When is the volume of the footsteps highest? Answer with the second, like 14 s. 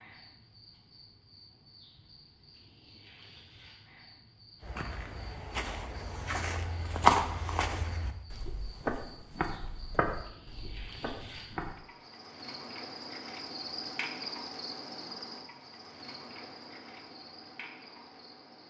7 s.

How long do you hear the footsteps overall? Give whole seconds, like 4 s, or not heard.
7 s.